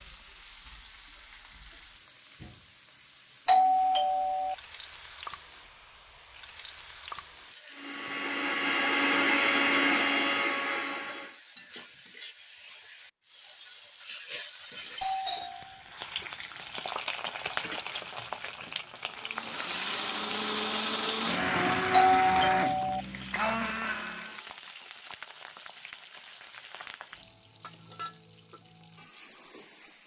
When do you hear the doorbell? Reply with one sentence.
You can hear the doorbell from 3.5 to 4.5 s, from 15.0 to 15.6 s and from 21.9 to 23.0 s.